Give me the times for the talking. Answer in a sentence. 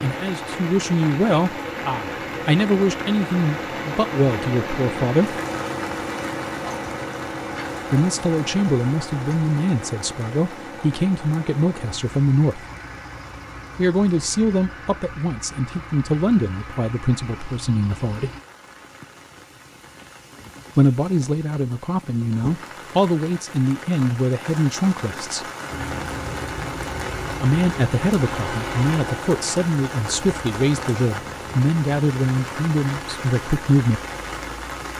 The talking can be heard from 0.0 to 5.4 s, from 7.9 to 12.7 s, from 13.8 to 18.3 s, from 20.8 to 25.4 s and from 27.4 to 34.0 s.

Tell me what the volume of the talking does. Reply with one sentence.
The loudness of the talking stays about the same.